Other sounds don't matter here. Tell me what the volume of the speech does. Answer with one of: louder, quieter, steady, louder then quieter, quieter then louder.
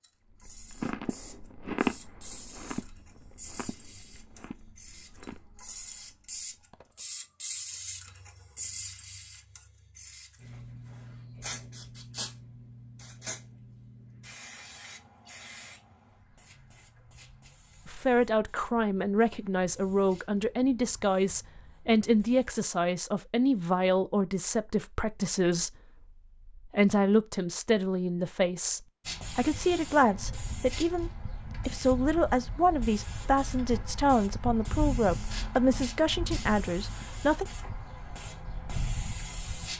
steady.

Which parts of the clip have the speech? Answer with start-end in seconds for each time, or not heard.
17.9-25.7, 26.4-37.5.